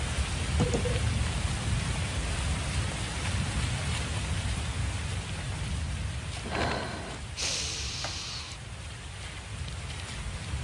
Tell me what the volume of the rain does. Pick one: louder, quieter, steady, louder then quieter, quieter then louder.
quieter.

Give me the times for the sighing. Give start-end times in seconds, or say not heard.
0.6-1.0, 6.4-8.6.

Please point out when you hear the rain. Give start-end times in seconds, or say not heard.
0.0-10.5.